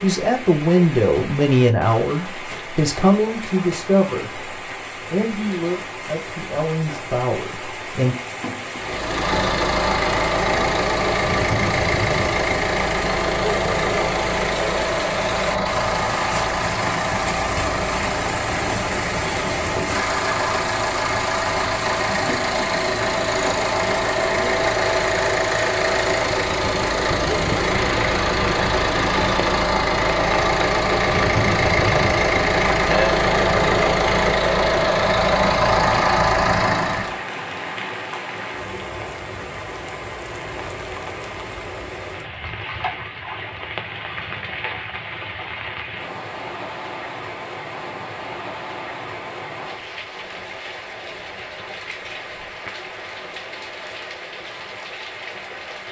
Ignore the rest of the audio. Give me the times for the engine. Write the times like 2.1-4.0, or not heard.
8.8-37.2.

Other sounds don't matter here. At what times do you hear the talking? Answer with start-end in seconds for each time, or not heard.
0.0-8.2.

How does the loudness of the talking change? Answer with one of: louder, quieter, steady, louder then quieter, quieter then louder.
quieter.